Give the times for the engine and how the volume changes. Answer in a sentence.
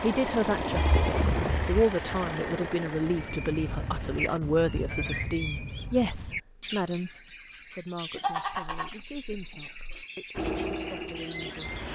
You can hear the engine from 0.0 to 4.4 s, getting quieter; and briefly from 10.3 to 11.9 s.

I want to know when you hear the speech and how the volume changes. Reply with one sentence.
The speech can be heard from 0.0 to 11.8 s, getting quieter.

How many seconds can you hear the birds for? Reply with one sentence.
You can hear the birds for 9 seconds altogether.